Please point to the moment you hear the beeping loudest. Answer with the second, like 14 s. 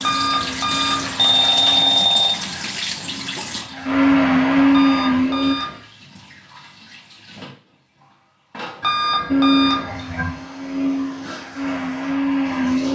2 s.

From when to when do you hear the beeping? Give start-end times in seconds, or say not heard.
0.0-2.3, 4.7-5.8, 8.8-10.0.